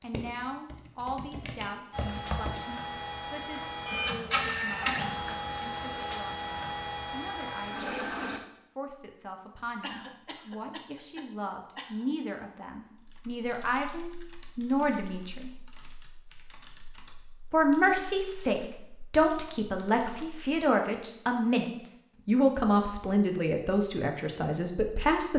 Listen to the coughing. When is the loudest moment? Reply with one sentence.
The loudest moment of the coughing is at 10 seconds.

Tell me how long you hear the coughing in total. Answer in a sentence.
The coughing can be heard for 2 seconds in total.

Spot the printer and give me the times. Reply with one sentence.
The printer can be heard from 1.9 to 8.4 s.